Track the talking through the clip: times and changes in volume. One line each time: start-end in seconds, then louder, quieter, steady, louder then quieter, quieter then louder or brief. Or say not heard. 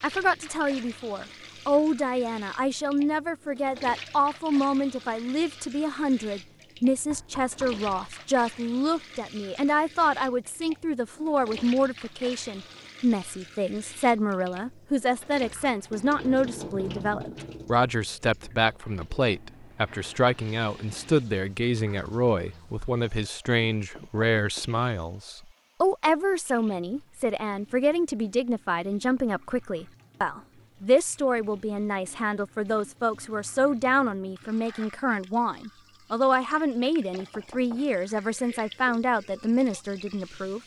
0.0-40.6 steady.